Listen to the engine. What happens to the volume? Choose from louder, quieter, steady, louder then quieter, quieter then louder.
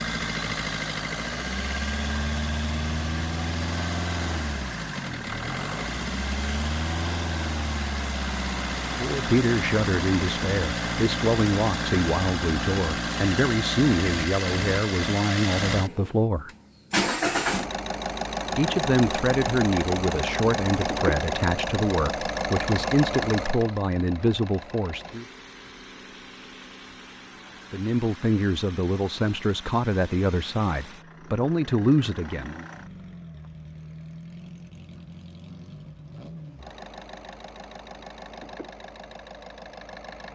quieter.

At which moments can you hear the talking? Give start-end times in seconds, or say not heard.
9.0-16.5, 18.6-25.2, 27.7-32.6.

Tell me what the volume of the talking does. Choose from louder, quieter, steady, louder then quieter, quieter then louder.
steady.